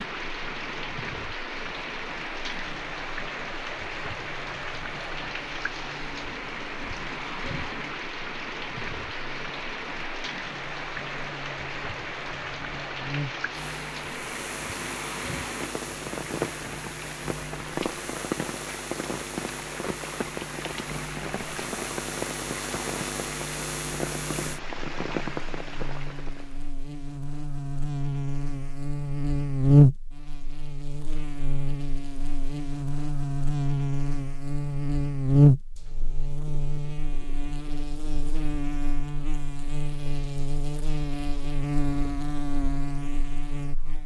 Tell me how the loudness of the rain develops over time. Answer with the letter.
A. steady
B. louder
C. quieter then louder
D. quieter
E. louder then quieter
A.